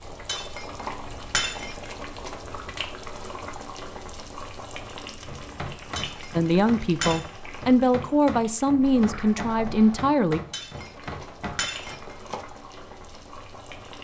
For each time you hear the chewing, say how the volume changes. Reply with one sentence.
You can't hear the chewing here.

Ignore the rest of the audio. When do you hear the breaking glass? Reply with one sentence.
The breaking glass can be heard from 0.2 to 1.9 s, from 6.0 to 7.3 s and from 10.5 to 12.2 s.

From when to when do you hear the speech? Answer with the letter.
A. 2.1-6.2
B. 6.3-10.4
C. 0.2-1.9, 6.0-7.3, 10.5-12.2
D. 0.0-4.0
B.